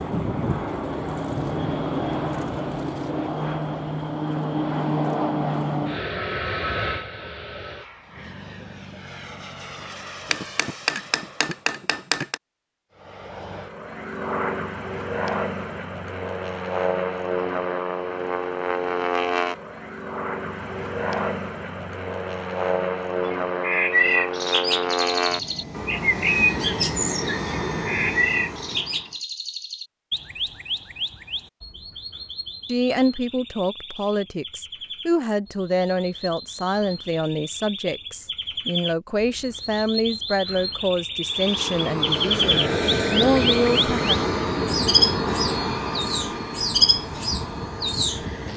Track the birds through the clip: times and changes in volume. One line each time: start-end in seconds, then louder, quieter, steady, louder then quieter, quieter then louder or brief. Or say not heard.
23.3-48.2 quieter then louder.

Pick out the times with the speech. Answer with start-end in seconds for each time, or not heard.
32.6-44.1.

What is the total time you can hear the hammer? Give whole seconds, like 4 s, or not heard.
2 s.